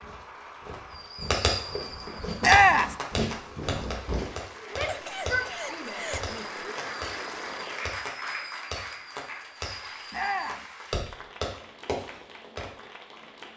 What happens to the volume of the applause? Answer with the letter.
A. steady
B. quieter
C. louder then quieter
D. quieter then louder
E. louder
C.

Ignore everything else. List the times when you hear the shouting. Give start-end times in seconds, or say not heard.
2.4-3.0, 4.7-6.6, 10.1-10.7.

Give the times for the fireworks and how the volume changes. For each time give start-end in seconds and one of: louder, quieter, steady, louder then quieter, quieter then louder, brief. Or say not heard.
1.1-12.7 quieter then louder.